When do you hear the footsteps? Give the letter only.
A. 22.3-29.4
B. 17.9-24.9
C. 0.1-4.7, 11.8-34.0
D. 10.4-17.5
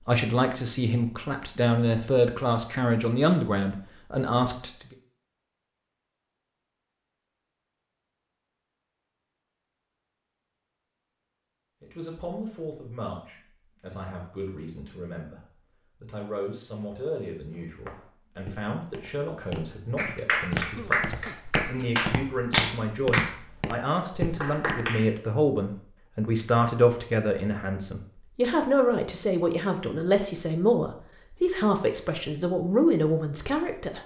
B.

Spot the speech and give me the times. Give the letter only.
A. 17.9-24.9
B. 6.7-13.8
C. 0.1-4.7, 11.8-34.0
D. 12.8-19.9
C.